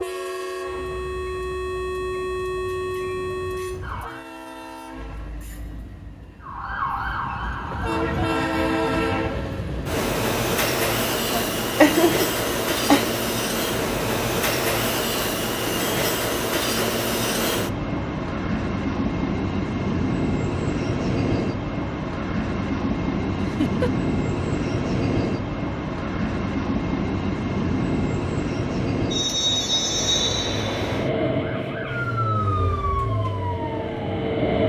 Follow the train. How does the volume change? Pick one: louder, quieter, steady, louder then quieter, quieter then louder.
louder.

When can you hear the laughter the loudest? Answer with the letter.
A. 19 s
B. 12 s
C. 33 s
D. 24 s
B.